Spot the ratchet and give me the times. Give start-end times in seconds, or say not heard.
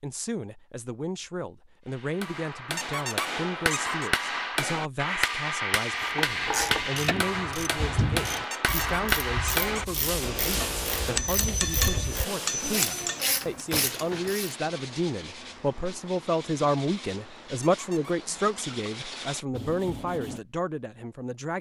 6.0-14.6.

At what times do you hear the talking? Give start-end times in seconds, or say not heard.
0.0-21.5.